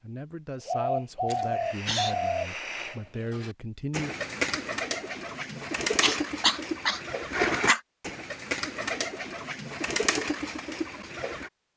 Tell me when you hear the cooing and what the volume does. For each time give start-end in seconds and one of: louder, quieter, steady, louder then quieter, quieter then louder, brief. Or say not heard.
0.7-11.5 steady.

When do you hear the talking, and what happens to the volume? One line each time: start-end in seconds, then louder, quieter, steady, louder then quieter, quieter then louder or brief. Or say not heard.
0.0-4.2 quieter then louder.